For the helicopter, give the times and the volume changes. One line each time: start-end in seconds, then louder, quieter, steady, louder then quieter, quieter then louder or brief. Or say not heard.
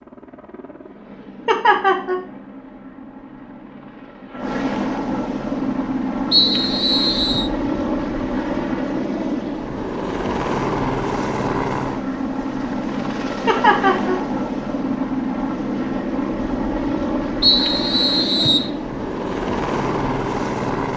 0.0-20.9 louder.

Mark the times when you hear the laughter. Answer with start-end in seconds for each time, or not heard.
1.4-2.2, 13.4-14.2.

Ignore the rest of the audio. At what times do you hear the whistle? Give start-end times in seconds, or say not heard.
6.3-7.5, 17.4-18.7.